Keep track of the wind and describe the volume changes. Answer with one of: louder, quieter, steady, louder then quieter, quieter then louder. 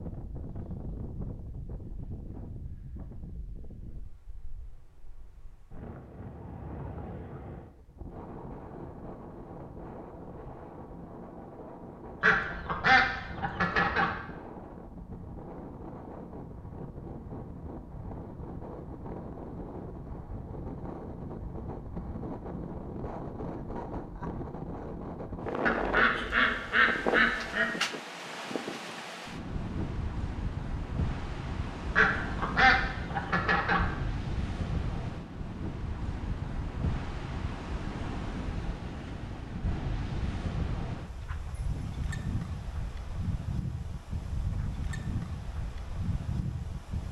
louder.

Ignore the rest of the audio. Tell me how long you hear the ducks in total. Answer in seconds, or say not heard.
6 s.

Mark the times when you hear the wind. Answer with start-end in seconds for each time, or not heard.
0.0-47.0.